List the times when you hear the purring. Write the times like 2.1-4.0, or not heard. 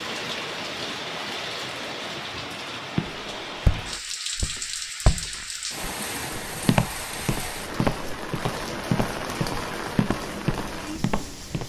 not heard.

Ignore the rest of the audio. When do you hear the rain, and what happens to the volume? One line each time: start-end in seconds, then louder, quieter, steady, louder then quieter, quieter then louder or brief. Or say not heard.
0.0-11.6 steady.